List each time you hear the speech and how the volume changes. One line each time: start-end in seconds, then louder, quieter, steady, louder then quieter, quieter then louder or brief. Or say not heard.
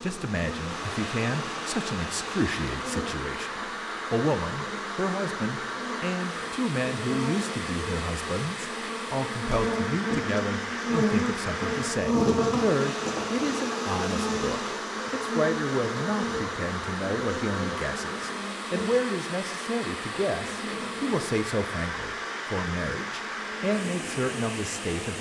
0.0-25.1 steady.